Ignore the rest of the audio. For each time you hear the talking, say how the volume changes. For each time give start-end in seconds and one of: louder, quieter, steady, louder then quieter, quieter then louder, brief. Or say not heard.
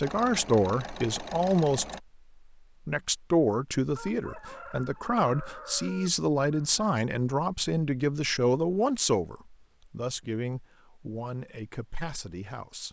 0.0-1.9 brief
2.9-12.8 quieter.